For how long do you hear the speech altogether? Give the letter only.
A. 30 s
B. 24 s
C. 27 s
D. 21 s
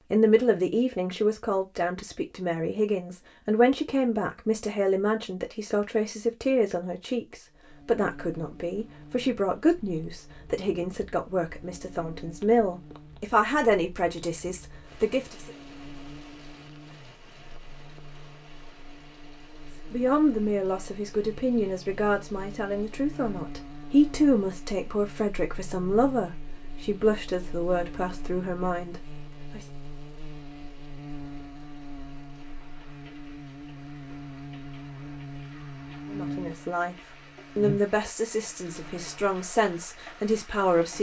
A.